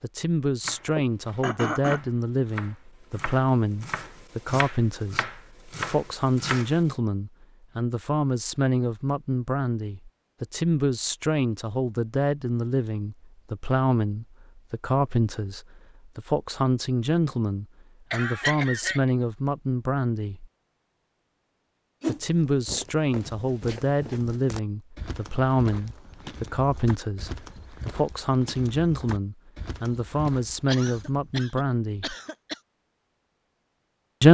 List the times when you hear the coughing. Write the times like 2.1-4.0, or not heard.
0.8-2.0, 18.1-19.1, 30.6-32.6.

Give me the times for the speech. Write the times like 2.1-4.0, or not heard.
0.0-20.4, 22.1-32.1.